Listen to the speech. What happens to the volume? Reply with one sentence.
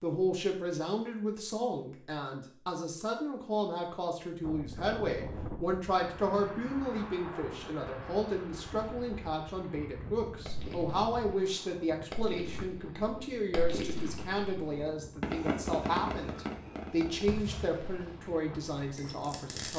The loudness of the speech stays about the same.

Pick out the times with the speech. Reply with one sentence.
You can hear the speech from 0.0 to 19.7 s.